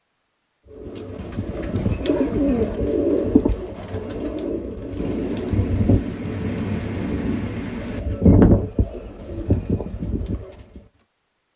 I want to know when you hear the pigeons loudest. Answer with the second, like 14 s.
8 s.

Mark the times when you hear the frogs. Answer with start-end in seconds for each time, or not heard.
not heard.